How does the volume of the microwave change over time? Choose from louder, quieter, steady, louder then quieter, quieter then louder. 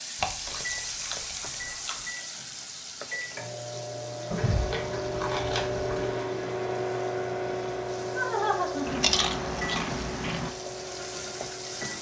louder then quieter.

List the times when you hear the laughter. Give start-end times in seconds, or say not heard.
8.1-9.1.